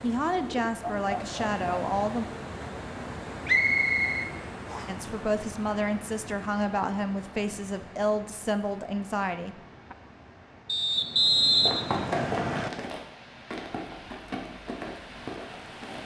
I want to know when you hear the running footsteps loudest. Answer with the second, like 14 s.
12 s.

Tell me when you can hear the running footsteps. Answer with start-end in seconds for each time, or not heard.
11.7-16.0.